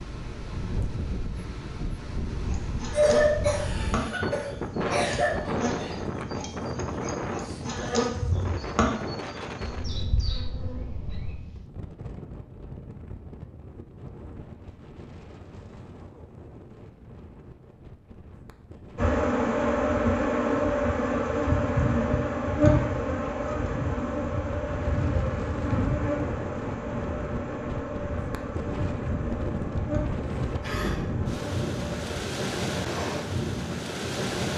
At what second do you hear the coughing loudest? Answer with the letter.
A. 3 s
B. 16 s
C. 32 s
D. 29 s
A.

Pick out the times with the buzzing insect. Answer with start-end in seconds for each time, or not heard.
2.5-11.3, 18.9-32.2.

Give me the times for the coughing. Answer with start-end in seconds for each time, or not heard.
2.9-5.6, 30.6-31.3.